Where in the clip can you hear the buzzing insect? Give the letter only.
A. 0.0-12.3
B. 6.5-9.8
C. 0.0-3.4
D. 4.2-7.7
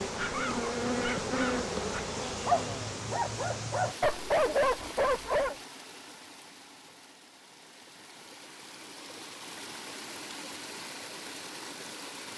C.